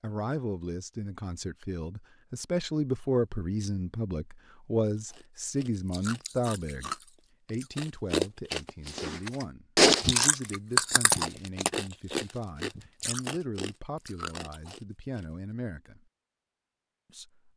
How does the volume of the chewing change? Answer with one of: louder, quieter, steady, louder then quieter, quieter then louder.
louder then quieter.